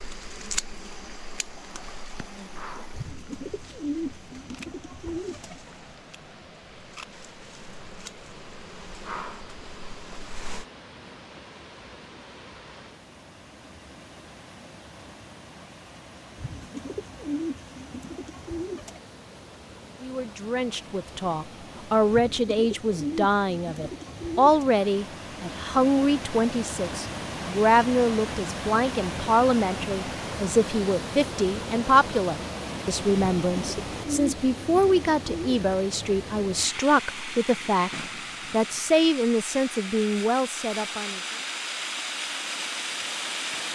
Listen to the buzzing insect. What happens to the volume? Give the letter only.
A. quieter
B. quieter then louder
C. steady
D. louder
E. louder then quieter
B.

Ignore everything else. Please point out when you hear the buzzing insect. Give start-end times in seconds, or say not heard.
0.0-10.7.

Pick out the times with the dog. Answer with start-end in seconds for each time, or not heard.
not heard.